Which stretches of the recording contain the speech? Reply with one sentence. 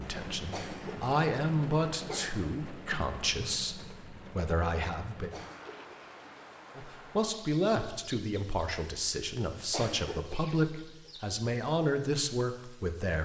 The speech can be heard from 0.0 to 5.3 s and from 6.8 to 13.2 s.